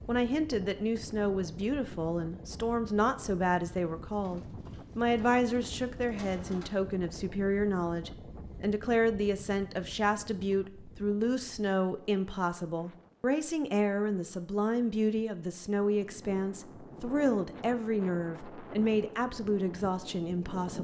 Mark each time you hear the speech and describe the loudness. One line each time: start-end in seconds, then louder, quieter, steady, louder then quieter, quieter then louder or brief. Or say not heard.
0.1-20.8 steady.